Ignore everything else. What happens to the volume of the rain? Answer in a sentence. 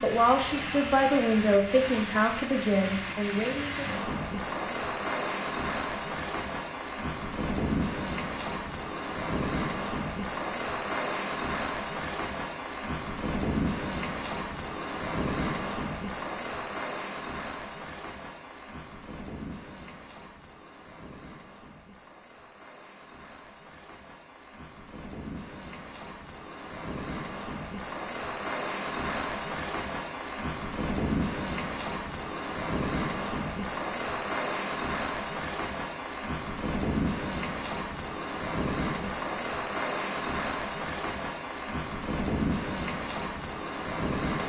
The loudness of the rain goes down, then up.